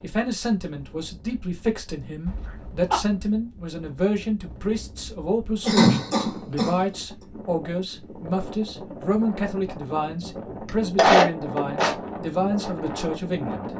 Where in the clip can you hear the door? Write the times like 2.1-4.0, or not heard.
not heard.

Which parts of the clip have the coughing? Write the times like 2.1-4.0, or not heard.
2.2-3.0, 5.7-6.8, 10.9-11.9.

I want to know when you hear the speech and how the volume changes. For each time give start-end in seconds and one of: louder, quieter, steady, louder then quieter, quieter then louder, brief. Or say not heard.
0.0-13.7 steady.